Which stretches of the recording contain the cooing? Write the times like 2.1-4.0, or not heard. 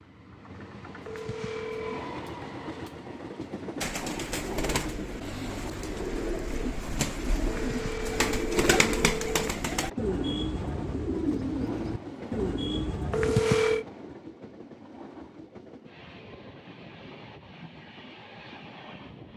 3.8-13.3.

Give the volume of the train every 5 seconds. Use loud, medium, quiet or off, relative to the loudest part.
loud, loud, loud, medium.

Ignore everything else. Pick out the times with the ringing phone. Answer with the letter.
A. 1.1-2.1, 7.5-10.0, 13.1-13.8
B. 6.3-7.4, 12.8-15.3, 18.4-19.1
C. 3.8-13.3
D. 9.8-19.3
A.